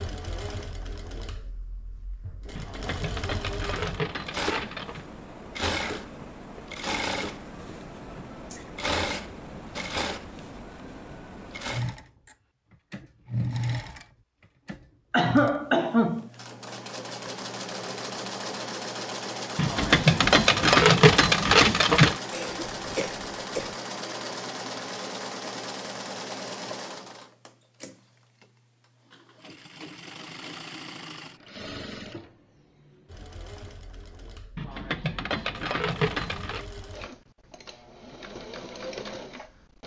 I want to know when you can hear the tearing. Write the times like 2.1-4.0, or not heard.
not heard.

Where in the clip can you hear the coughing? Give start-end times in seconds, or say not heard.
15.1-16.3, 22.3-23.8.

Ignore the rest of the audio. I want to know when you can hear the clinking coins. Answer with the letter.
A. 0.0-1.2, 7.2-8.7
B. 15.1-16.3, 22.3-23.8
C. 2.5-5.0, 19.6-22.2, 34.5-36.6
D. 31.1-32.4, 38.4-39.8
C.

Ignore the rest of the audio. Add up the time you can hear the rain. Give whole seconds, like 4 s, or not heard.
not heard.